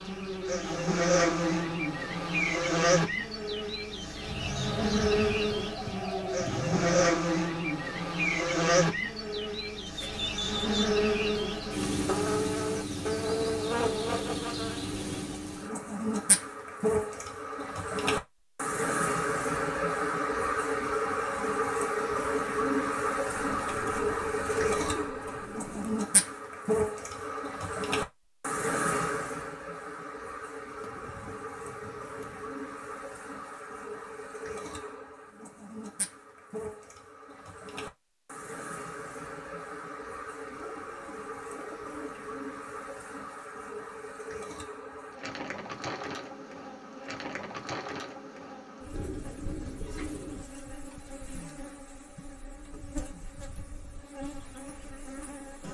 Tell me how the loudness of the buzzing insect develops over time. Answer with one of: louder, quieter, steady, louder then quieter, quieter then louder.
quieter.